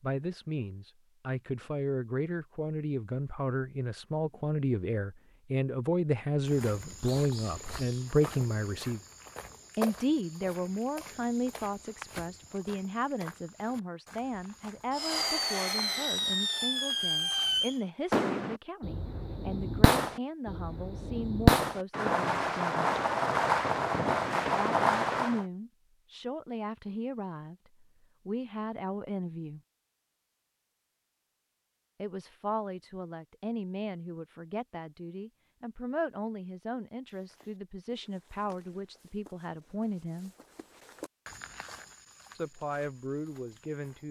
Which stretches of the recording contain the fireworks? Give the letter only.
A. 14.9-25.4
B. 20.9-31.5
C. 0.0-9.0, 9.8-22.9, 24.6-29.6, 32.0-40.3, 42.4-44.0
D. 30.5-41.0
A.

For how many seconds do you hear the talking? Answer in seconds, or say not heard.
37 s.